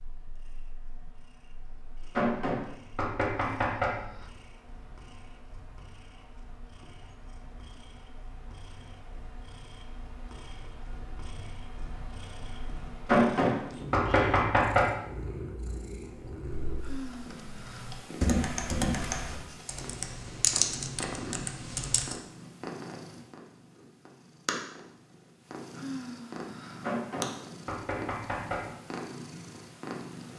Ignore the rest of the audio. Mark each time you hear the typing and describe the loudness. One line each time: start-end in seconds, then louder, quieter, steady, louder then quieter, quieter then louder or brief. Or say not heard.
16.1-22.2 louder then quieter.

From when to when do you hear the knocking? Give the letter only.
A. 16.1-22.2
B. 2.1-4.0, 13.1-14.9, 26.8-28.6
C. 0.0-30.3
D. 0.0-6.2
B.